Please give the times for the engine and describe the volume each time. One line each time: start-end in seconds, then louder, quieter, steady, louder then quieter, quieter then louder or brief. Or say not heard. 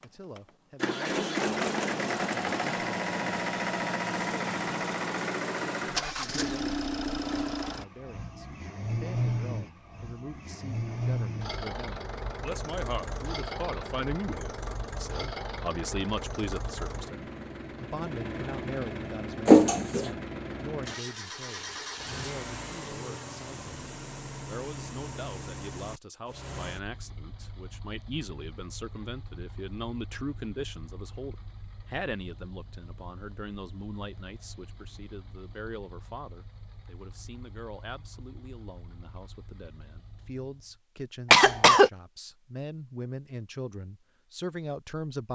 0.0-40.8 quieter.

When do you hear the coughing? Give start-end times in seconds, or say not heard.
19.4-20.1, 41.3-41.9.